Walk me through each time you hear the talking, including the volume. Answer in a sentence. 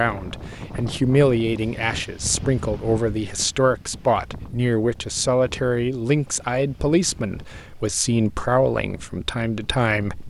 The talking can be heard from 0.0 to 10.2 s, at a steady volume.